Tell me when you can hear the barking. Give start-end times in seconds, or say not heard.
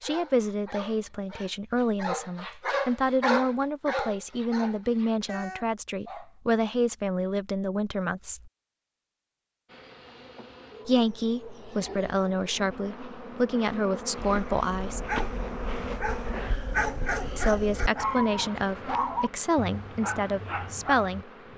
0.0-6.3, 14.2-21.2.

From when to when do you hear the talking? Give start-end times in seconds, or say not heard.
0.0-8.5, 10.8-15.1, 17.4-21.2.